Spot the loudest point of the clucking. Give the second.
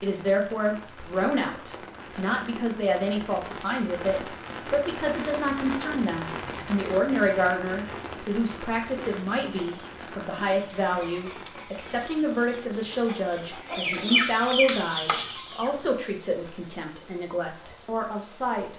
14 s.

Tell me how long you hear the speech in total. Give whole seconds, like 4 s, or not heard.
19 s.